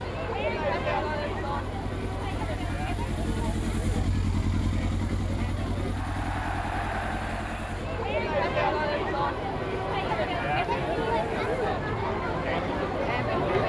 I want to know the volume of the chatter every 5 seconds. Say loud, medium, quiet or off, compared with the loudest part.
medium, loud, loud.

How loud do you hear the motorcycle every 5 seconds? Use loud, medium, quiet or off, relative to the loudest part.
loud, loud, medium.